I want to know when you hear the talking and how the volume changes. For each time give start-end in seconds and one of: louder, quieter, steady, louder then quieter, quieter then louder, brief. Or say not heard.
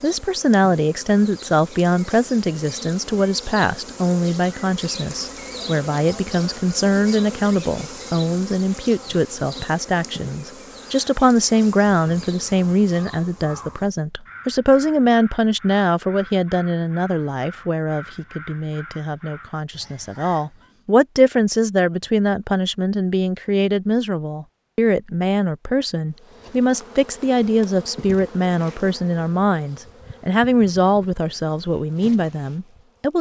0.0-33.1 steady.